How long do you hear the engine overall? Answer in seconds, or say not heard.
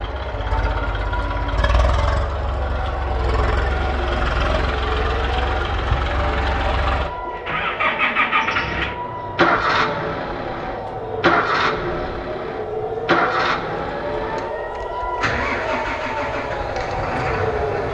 18 s.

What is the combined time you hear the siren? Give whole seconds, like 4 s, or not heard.
18 s.